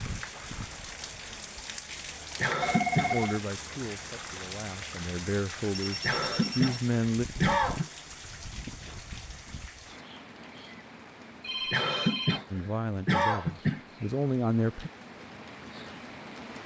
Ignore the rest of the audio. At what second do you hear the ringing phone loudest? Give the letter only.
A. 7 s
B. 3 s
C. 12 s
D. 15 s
B.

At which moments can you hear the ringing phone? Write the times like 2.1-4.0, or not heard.
2.6-3.4, 5.7-6.8, 11.4-12.4.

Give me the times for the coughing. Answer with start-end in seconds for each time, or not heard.
2.4-3.3, 6.0-7.9, 11.7-13.8.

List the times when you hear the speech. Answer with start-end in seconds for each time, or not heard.
3.0-7.2, 12.5-14.9.